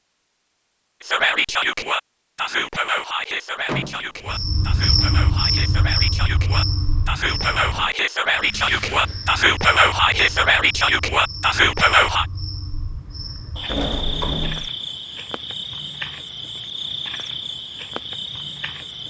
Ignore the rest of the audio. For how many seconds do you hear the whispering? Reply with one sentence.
The whispering can be heard for 11 seconds in total.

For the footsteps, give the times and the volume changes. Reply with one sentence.
You can't hear the footsteps here.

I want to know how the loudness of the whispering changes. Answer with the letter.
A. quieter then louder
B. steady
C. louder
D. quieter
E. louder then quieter
A.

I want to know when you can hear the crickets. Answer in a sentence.
The crickets can be heard from 4.2 to 19.0 s.